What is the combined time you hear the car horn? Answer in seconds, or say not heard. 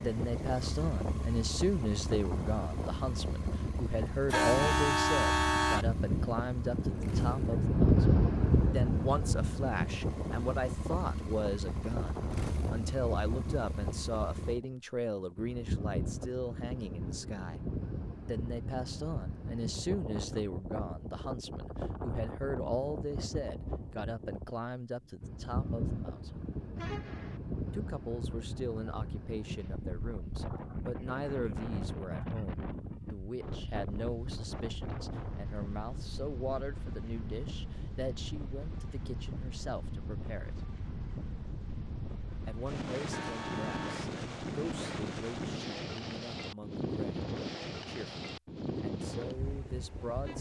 3 s.